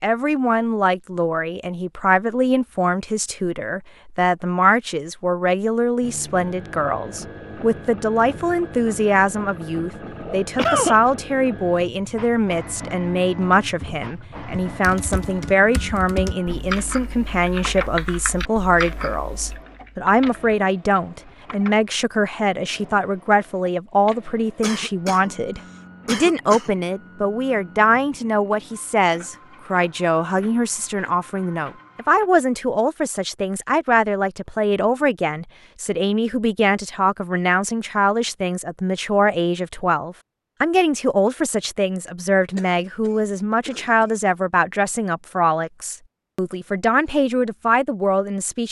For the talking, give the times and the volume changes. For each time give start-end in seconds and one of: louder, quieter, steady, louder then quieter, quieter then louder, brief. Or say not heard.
0.0-48.6 steady.